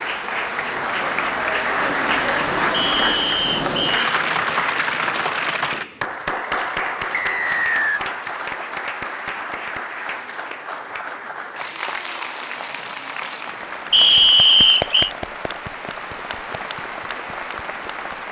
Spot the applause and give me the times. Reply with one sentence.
The applause can be heard from 0.0 to 18.2 s.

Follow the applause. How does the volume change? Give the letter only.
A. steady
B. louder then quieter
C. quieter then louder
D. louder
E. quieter
E.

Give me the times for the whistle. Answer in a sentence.
The whistle can be heard from 2.7 to 4.2 s, from 7.1 to 8.0 s and from 13.9 to 15.1 s.